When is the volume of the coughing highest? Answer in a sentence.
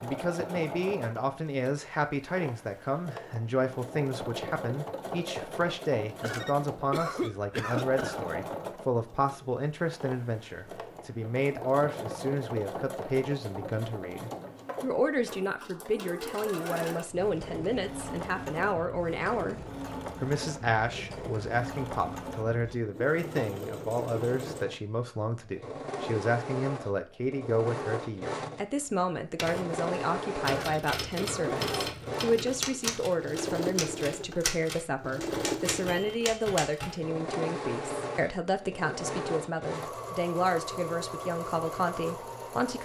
The loudest moment of the coughing is at 7 seconds.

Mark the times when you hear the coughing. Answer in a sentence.
The coughing can be heard from 6.2 to 8.2 s and from 30.5 to 31.6 s.